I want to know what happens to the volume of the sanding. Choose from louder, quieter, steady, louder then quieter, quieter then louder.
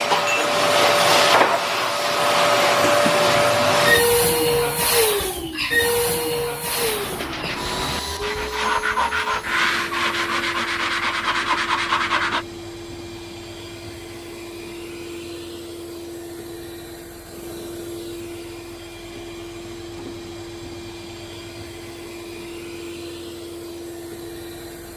louder.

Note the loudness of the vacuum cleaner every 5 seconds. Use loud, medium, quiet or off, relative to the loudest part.
loud, medium, quiet, quiet, quiet.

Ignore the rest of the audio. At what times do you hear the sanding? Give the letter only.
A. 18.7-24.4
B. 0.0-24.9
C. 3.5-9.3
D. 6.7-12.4
D.